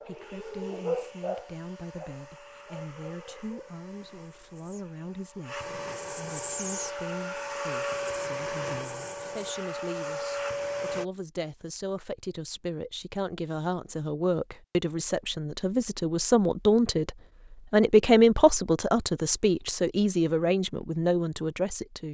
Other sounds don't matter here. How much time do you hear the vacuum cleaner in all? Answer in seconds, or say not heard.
11 s.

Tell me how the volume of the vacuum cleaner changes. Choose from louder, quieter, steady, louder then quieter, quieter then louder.
louder.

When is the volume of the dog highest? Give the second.
1 s.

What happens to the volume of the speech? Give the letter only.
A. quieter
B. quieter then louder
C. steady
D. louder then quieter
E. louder
E.